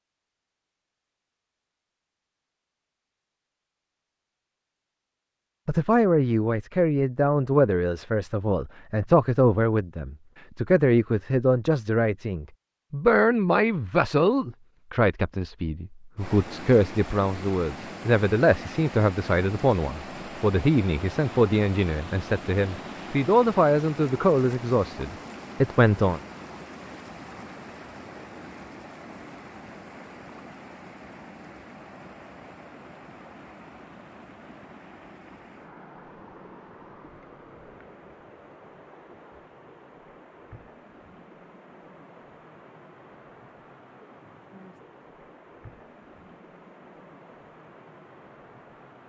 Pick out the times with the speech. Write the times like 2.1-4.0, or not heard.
5.7-26.2.